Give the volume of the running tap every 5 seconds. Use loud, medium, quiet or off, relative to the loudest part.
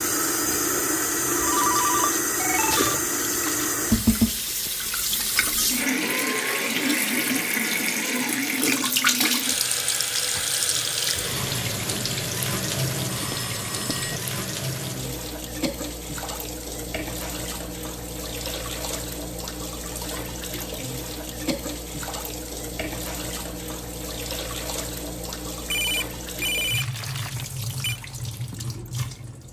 loud, loud, loud, medium, medium, medium.